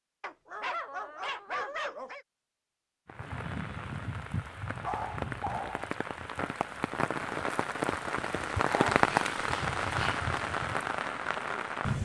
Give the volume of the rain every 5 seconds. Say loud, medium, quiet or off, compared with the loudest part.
medium, loud, loud.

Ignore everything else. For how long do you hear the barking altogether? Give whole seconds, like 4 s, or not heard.
5 s.